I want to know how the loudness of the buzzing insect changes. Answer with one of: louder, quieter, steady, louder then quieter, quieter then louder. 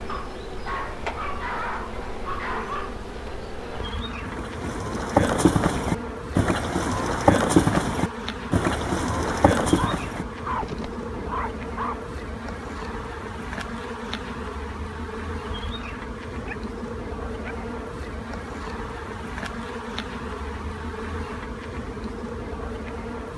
steady.